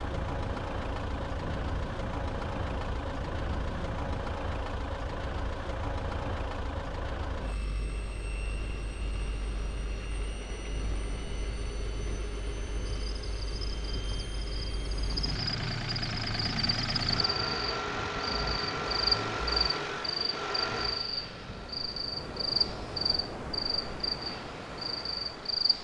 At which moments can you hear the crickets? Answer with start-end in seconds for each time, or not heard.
13.1-25.7.